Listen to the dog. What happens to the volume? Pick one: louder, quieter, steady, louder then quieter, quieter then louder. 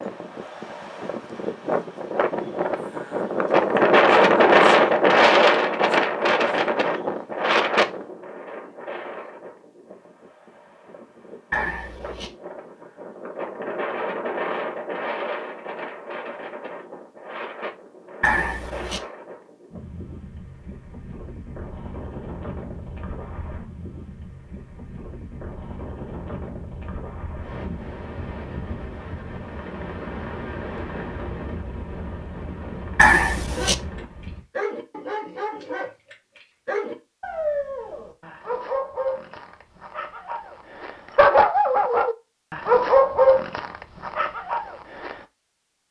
louder.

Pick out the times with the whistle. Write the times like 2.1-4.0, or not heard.
not heard.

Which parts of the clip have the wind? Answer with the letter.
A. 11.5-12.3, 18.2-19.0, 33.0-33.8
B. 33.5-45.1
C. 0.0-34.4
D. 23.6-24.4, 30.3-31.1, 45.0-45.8
C.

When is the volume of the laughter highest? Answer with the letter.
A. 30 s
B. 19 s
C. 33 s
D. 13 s
C.